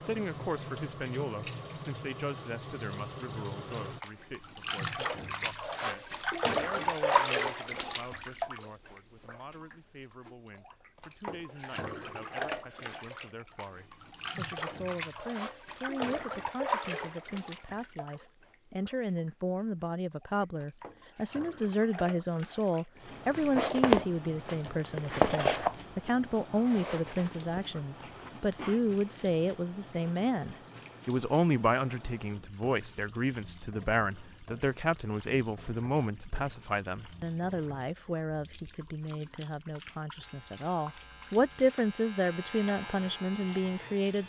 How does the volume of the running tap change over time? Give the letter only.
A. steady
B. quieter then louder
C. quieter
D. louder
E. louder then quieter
C.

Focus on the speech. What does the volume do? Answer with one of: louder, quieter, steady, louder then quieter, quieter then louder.
louder.